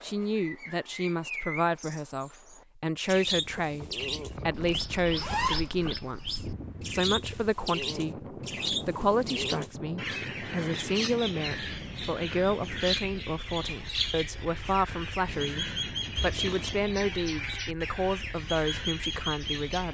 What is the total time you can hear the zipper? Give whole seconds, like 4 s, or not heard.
2 s.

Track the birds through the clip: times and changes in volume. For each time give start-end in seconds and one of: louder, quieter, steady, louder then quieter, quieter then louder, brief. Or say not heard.
0.0-19.8 steady.